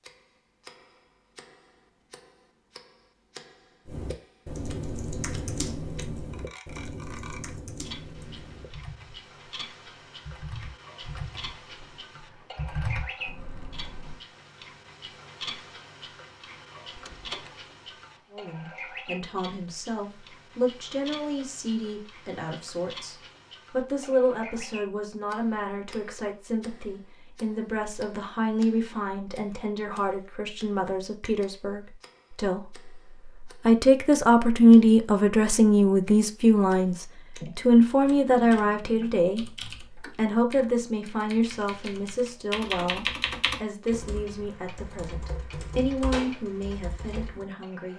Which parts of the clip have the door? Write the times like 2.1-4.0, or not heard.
16.9-17.6.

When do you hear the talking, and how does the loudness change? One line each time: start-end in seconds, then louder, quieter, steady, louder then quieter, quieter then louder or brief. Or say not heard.
18.3-47.9 louder then quieter.